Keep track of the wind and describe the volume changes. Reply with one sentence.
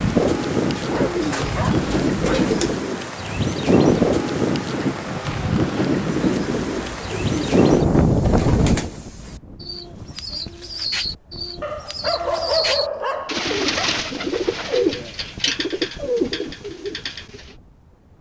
The loudness of the wind goes down.